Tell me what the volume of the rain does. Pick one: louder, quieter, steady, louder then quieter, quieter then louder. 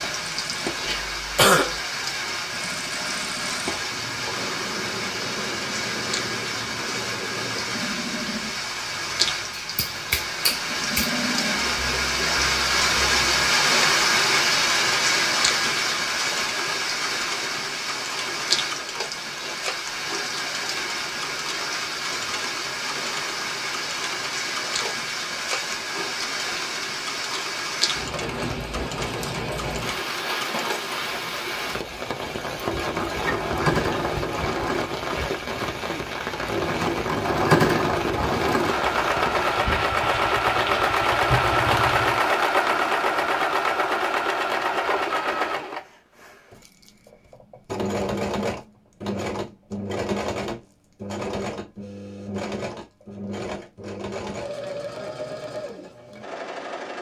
louder then quieter.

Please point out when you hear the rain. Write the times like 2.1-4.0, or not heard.
0.0-42.3.